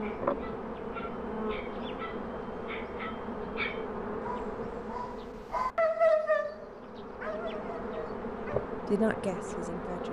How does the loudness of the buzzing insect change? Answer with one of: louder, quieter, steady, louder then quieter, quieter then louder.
quieter then louder.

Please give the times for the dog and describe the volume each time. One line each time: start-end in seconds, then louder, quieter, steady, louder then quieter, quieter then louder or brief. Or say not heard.
0.0-8.7 louder then quieter.